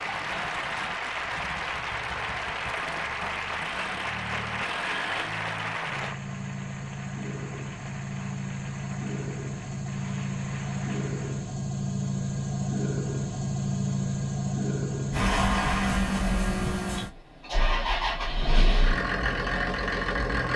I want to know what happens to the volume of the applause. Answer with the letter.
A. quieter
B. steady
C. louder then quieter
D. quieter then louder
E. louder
A.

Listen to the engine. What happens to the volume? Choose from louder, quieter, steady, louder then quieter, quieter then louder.
louder.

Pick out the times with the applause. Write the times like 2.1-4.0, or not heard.
0.0-11.6.